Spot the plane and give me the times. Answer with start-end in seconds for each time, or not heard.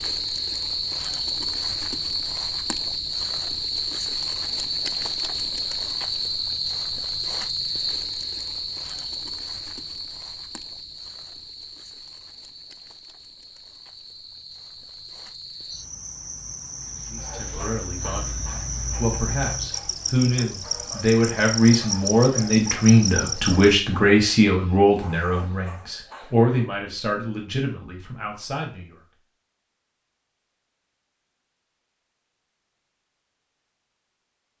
not heard.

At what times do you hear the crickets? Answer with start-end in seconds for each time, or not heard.
0.0-23.8.